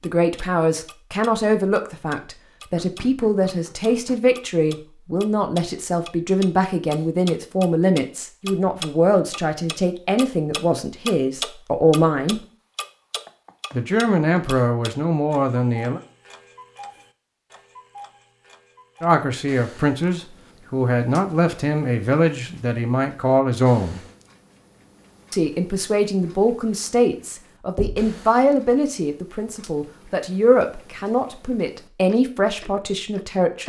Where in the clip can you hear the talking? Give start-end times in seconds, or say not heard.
0.0-12.4, 13.7-16.0, 19.0-24.0, 25.3-33.6.